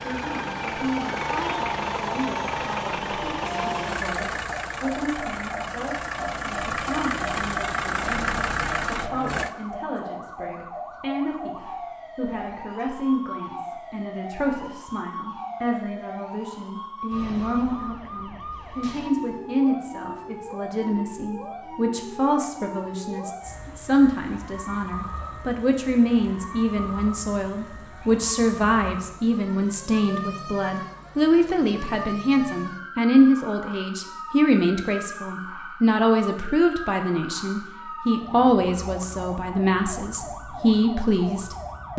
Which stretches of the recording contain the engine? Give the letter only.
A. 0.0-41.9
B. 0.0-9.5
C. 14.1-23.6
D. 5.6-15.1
B.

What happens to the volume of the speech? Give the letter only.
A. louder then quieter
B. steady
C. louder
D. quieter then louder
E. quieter
C.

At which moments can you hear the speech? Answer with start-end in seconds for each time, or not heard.
0.0-41.9.